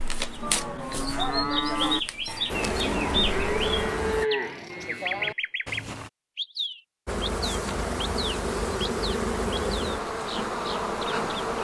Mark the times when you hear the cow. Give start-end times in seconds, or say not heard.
0.4-6.1.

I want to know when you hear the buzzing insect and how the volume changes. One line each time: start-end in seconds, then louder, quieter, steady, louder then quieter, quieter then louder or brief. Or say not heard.
2.5-4.2 brief
7.0-11.5 steady.